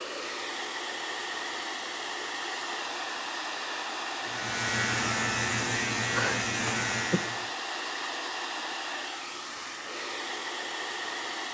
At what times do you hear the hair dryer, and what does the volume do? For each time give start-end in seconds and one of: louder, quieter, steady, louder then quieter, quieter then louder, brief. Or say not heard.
0.0-11.4 steady.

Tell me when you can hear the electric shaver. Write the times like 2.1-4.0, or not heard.
4.2-7.5.